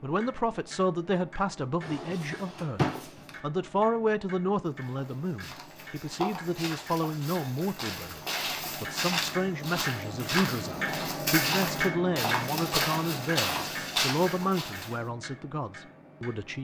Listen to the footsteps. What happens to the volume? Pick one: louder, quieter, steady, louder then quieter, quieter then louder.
louder.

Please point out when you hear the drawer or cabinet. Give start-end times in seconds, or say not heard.
1.8-3.4.